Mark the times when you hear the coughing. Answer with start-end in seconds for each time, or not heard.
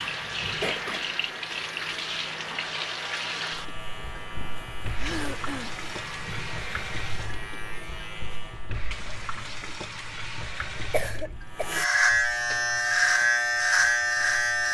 0.6-1.1, 5.0-5.8, 10.9-11.7.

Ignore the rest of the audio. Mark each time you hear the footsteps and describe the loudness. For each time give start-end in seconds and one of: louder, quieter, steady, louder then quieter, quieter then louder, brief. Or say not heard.
not heard.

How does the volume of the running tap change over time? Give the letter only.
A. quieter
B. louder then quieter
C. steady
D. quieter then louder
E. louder
A.